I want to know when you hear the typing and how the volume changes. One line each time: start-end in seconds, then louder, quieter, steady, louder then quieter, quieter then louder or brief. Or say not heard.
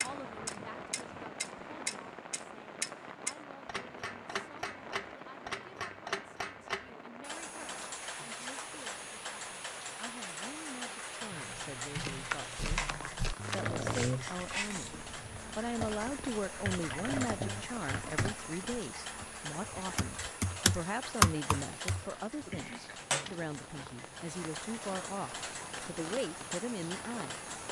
11.3-22.8 louder.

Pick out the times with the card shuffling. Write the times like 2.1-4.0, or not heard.
11.9-13.7.